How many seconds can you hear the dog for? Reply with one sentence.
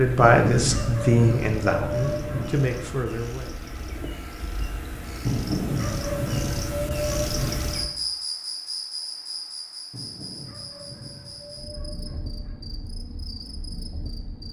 The dog can be heard for 8 seconds in total.